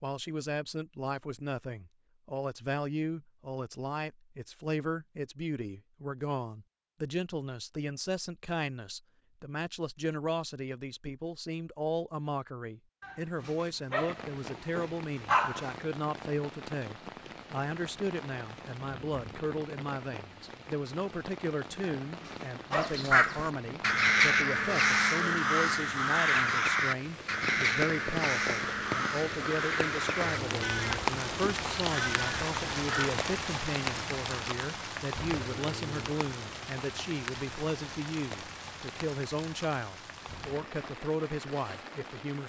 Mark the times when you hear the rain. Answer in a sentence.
You can hear the rain from 13.9 to 42.4 s.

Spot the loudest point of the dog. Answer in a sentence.
The volume of the dog peaks at 15 seconds.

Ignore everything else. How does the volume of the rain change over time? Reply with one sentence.
The volume of the rain goes up, then down.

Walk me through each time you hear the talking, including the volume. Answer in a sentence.
You can hear the talking from 0.0 to 42.4 s, at a steady volume.